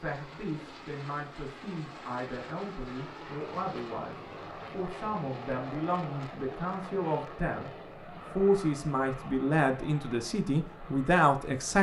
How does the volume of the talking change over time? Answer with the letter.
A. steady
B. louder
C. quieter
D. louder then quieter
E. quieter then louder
B.